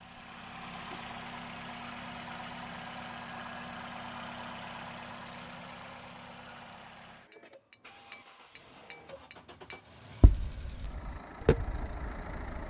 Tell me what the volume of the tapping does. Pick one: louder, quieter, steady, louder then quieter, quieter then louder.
louder then quieter.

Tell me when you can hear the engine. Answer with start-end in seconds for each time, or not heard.
0.0-12.6.